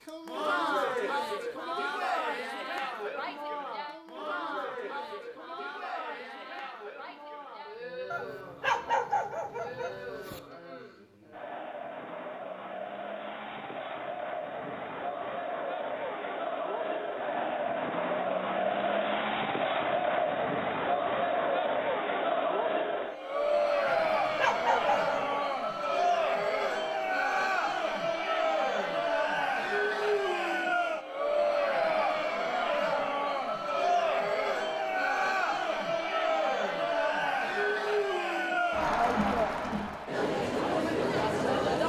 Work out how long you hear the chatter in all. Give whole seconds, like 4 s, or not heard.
42 s.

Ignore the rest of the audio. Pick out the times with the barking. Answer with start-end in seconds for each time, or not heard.
8.1-10.4, 23.9-25.4.